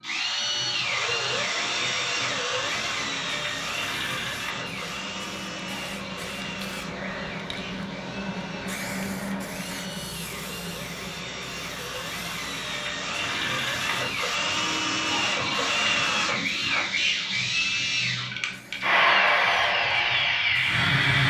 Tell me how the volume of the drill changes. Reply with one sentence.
The loudness of the drill goes down, then up.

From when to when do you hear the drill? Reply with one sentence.
The drill can be heard from 0.0 to 21.2 s.